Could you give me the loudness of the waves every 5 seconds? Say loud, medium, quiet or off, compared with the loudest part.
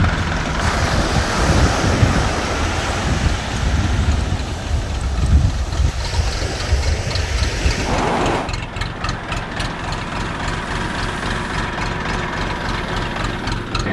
loud, loud, quiet.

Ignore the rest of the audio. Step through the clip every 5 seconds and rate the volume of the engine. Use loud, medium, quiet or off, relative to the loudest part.
loud, medium, loud.